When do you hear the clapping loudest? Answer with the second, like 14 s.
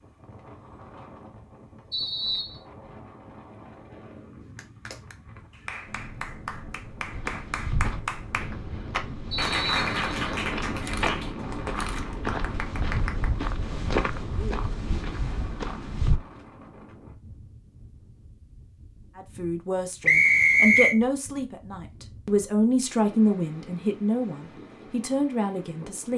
10 s.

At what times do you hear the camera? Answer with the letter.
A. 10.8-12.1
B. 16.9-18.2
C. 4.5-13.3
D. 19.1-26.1
A.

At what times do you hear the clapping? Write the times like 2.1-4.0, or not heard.
4.5-13.3.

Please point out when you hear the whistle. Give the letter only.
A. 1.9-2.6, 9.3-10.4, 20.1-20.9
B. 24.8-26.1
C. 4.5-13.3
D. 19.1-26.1
A.